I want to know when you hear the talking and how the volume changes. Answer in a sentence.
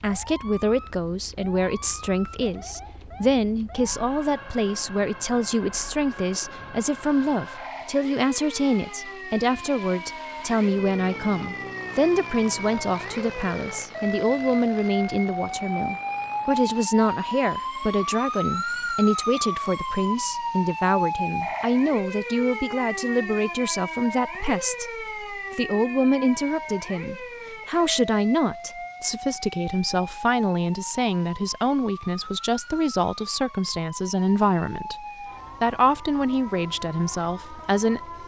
You can hear the talking from 0.0 to 38.1 s, at a steady volume.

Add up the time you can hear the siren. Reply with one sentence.
The siren can be heard for 38 seconds in total.